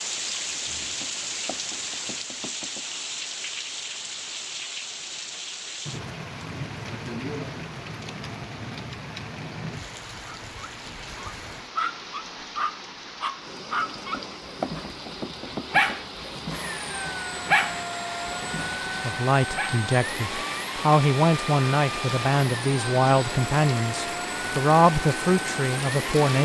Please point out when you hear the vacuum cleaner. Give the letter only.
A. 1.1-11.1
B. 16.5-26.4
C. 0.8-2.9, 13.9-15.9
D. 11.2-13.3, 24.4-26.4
B.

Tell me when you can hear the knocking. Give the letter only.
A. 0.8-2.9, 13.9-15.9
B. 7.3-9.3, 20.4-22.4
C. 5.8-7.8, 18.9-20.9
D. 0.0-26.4
A.